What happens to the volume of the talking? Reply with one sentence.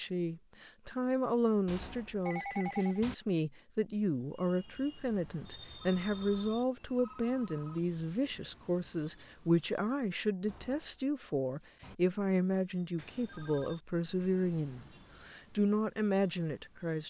The volume of the talking stays about the same.